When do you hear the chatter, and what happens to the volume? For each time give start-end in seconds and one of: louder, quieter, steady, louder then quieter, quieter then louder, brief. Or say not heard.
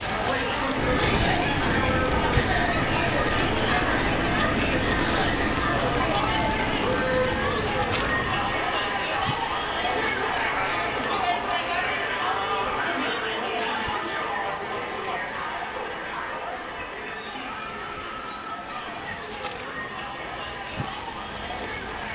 0.0-22.1 quieter.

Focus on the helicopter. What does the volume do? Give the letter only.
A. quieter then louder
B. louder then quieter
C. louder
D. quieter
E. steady
D.